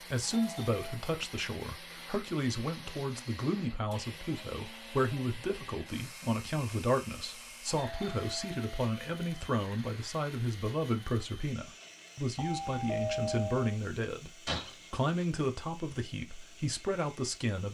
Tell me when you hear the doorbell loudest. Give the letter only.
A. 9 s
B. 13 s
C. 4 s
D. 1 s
B.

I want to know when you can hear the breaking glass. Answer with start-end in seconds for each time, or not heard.
14.4-15.1.